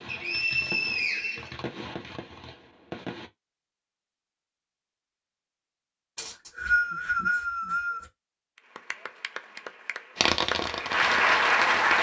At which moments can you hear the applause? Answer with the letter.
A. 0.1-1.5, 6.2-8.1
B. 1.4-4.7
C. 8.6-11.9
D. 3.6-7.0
C.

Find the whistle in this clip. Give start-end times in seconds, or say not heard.
0.1-1.5, 6.2-8.1.